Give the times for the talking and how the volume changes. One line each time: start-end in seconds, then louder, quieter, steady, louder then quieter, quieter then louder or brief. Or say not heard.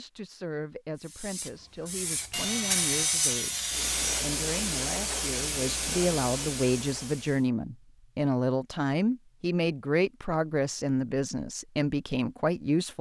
0.0-12.9 louder.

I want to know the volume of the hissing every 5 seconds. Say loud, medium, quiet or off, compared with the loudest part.
loud, loud, off.